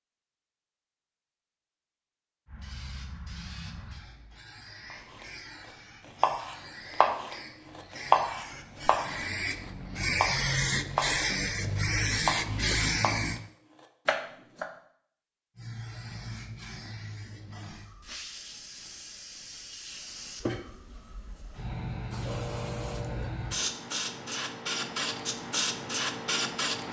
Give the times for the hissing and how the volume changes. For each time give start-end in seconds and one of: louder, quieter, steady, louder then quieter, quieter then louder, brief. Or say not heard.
2.5-13.4 louder
15.6-26.8 louder.